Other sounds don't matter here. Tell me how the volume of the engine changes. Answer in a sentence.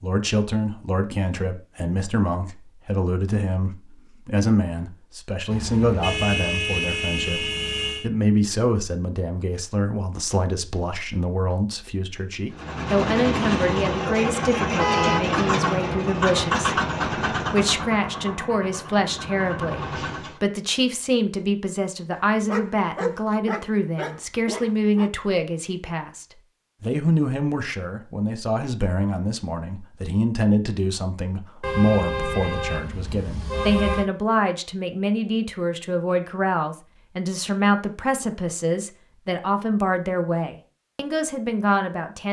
The volume of the engine goes down.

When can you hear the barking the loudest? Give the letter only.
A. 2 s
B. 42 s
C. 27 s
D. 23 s
D.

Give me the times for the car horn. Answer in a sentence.
You can hear the car horn from 5.5 to 8.1 s, from 14.8 to 15.2 s and from 31.6 to 34.1 s.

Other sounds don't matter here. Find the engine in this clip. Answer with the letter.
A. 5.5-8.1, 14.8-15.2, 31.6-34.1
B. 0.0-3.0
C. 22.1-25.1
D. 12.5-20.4
D.